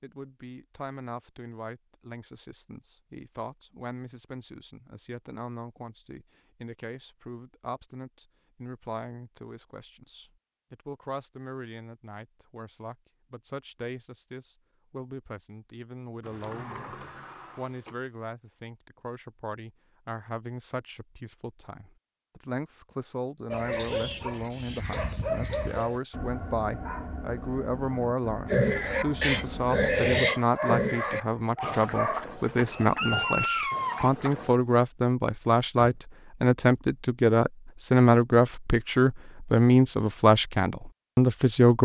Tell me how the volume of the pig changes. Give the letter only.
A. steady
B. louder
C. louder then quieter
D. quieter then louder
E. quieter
E.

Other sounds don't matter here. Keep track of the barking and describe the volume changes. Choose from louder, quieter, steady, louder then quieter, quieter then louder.
quieter then louder.